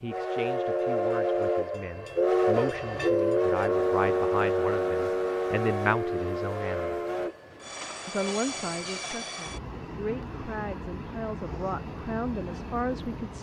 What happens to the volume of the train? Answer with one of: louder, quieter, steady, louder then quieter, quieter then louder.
quieter.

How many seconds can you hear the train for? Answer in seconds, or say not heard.
13 s.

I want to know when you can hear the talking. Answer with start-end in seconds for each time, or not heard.
0.0-7.0, 8.1-13.3.